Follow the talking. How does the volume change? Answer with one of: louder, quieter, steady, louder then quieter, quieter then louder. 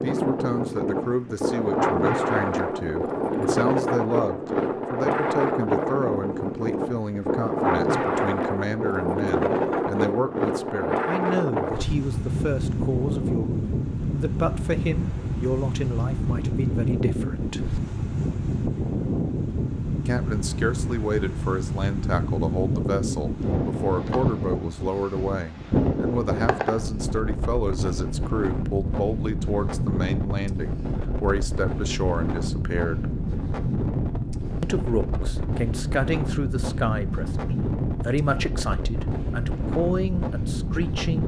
steady.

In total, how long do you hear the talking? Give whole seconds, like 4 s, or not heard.
37 s.